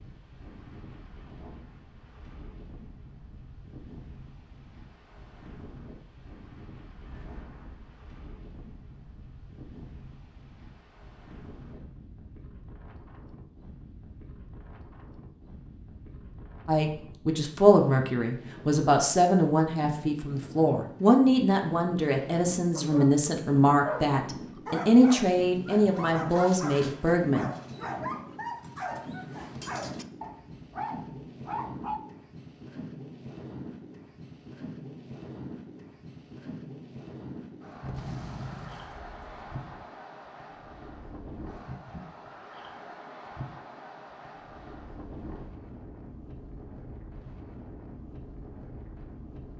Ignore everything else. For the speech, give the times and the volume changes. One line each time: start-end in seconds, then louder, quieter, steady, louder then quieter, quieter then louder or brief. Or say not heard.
16.6-27.5 steady.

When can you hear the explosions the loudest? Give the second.
38 s.